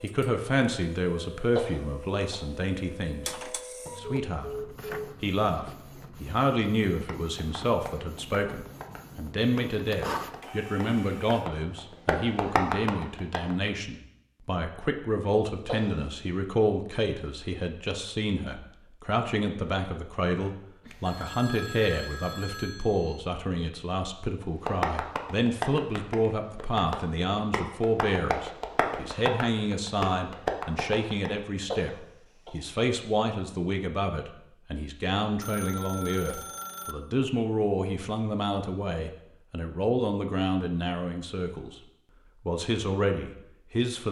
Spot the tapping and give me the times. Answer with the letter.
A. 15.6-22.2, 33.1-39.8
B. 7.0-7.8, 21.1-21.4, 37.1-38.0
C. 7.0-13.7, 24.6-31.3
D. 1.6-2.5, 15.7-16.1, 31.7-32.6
C.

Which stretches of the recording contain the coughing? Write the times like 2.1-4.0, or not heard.
1.6-2.5, 15.7-16.1, 31.7-32.6.